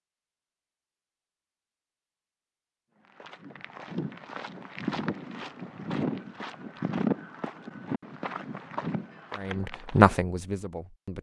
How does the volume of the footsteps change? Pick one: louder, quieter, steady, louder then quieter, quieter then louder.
louder then quieter.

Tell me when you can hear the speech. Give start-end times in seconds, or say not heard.
9.3-11.1.